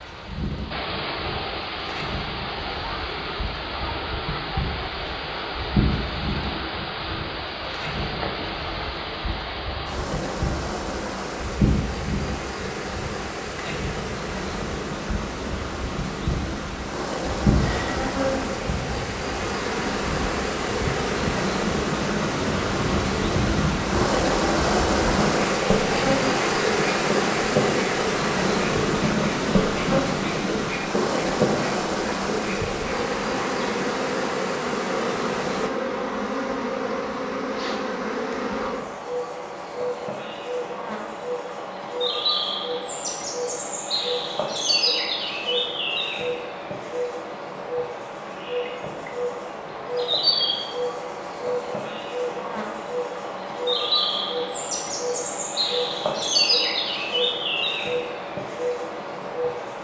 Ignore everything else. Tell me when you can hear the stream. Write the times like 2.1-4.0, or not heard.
0.0-35.7.